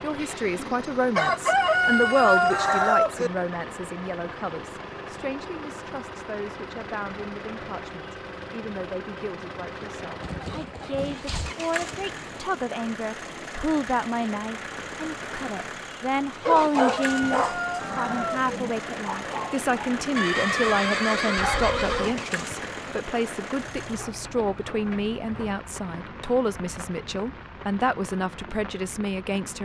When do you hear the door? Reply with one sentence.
The door can't be heard in this clip.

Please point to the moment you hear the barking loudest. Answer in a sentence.
The volume of the barking peaks at 17 seconds.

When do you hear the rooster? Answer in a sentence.
You can hear the rooster from 1.1 to 3.3 s and from 16.4 to 18.5 s.